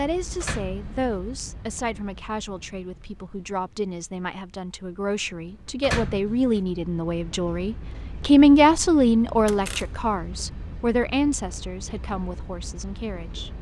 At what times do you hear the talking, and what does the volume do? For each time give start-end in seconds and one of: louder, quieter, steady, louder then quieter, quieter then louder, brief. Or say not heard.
0.0-13.5 louder then quieter.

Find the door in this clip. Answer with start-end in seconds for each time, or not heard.
0.4-0.9, 5.8-6.5, 9.4-10.1.